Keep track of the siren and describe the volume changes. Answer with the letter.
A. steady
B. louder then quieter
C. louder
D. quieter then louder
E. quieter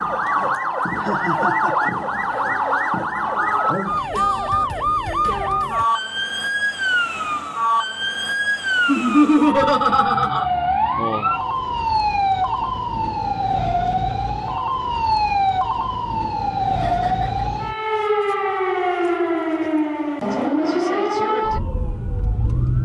A.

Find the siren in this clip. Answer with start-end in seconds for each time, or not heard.
0.0-22.8.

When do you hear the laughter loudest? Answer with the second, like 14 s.
9 s.